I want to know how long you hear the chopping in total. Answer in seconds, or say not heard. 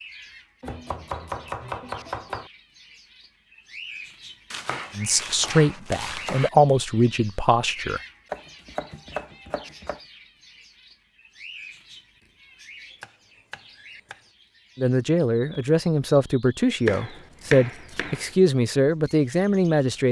8 s.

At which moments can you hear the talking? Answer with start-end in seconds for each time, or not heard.
5.0-8.0, 14.8-20.0.